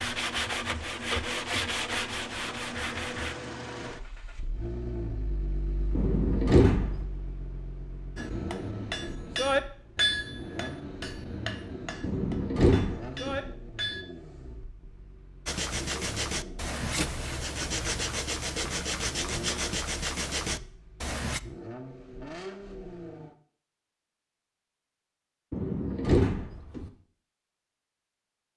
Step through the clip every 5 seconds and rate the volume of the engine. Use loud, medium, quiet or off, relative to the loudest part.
loud, loud, loud, loud, loud, off.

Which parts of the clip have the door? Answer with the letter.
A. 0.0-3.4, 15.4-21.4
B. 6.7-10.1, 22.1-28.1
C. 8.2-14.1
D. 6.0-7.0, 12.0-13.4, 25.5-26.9
D.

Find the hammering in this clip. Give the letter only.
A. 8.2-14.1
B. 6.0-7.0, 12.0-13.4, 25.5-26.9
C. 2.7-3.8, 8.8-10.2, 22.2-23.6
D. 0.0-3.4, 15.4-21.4
A.